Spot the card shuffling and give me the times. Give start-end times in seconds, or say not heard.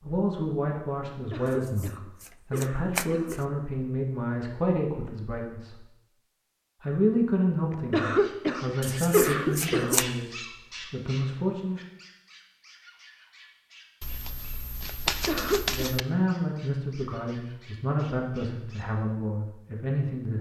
1.4-3.5, 8.8-10.1, 14.0-16.1.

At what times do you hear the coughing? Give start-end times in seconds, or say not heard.
1.1-3.5, 7.7-10.0, 15.1-15.8.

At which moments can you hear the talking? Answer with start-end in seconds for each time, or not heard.
0.0-5.8, 6.8-11.8, 15.7-20.3.